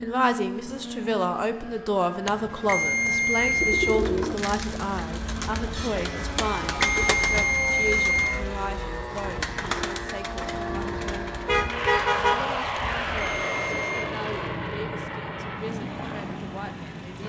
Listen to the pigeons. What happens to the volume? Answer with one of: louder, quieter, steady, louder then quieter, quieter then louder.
quieter.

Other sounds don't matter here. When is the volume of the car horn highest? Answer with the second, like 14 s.
12 s.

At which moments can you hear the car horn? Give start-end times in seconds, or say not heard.
10.7-12.6.